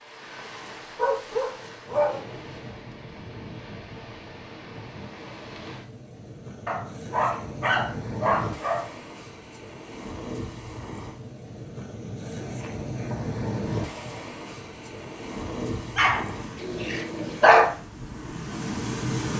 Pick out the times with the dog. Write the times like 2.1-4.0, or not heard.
0.6-2.2, 6.7-8.8, 15.9-17.6.